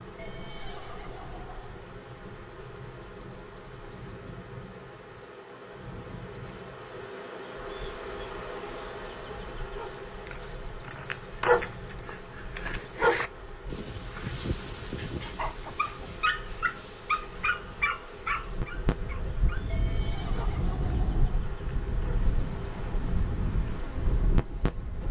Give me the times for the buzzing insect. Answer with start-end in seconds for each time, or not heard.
0.0-25.0.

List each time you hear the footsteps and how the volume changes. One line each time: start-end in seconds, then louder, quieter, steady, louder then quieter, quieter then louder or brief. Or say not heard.
not heard.